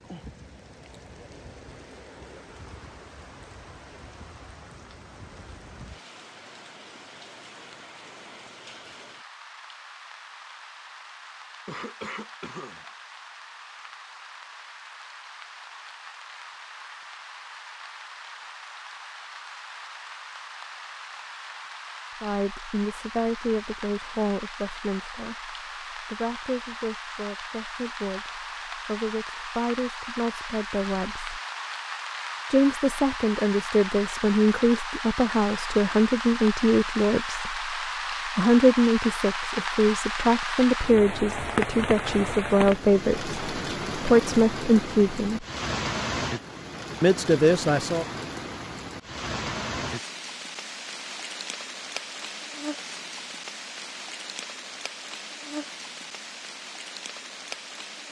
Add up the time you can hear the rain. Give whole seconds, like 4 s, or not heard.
58 s.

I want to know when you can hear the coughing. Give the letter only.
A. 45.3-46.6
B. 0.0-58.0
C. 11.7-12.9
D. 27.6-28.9
C.